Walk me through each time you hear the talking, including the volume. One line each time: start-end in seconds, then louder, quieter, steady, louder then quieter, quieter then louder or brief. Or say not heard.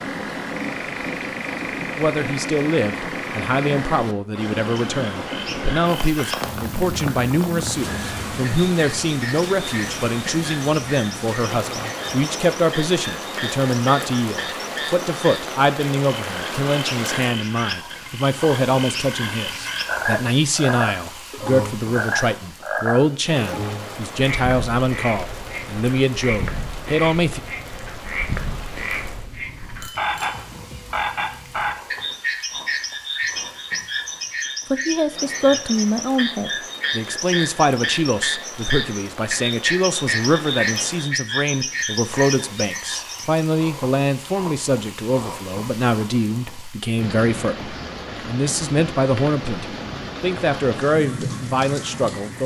1.9-27.4 steady
34.7-52.4 steady.